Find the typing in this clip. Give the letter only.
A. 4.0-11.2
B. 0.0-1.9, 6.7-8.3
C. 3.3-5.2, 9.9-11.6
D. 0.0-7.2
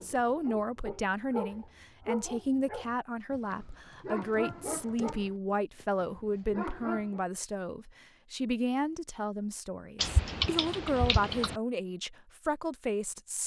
C.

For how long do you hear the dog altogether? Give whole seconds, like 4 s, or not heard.
7 s.